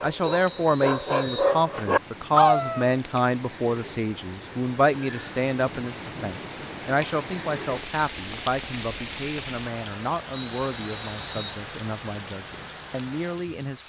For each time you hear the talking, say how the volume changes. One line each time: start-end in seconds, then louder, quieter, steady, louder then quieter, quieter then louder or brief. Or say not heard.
0.0-13.8 quieter.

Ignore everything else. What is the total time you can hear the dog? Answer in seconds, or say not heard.
3 s.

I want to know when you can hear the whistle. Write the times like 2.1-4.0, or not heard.
0.2-1.5, 10.3-11.6.